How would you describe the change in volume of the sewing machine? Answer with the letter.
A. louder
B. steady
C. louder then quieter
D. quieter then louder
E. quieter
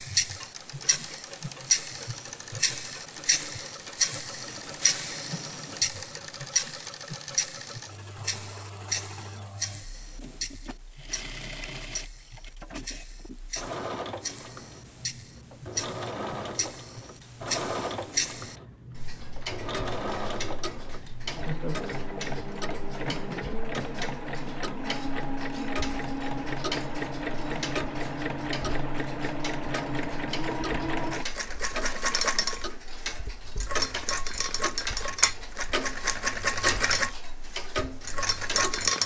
A.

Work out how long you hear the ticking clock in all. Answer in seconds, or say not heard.
39 s.